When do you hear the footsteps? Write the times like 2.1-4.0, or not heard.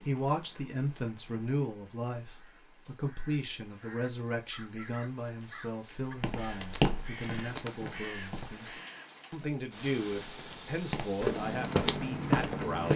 6.0-8.6, 10.9-12.9.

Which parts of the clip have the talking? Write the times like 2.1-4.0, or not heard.
0.0-8.7, 9.3-12.9.